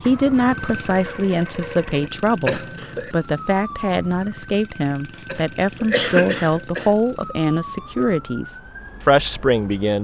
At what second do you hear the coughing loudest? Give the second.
6 s.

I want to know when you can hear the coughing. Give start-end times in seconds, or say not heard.
2.5-3.1, 5.2-7.0.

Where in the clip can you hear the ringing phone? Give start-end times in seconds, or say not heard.
not heard.